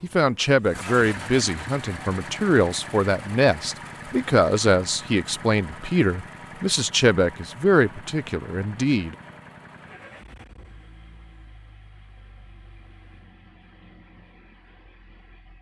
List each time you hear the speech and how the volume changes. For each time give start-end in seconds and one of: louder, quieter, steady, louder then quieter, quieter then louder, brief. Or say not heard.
0.0-9.2 steady.